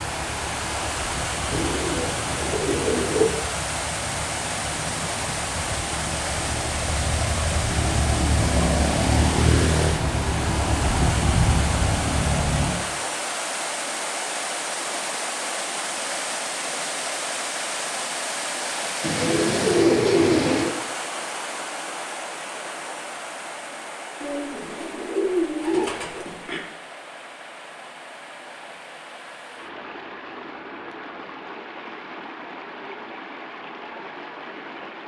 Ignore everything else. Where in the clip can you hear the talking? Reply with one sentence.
You can't hear the talking here.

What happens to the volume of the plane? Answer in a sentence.
The volume of the plane goes up.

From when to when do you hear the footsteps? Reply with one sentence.
You can't hear the footsteps here.